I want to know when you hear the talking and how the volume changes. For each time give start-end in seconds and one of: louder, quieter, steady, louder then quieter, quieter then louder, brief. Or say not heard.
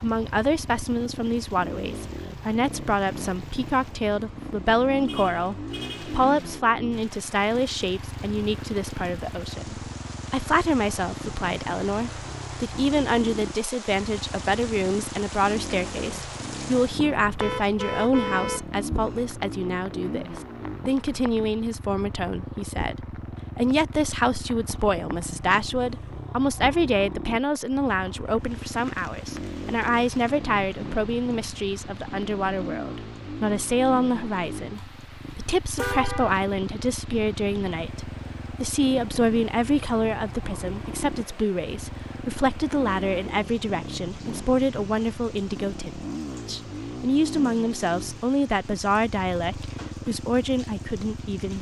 0.0-51.5 steady.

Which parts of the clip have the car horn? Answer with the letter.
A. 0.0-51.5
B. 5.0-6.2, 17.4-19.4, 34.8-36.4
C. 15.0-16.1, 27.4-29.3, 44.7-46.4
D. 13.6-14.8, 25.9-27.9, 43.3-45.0
B.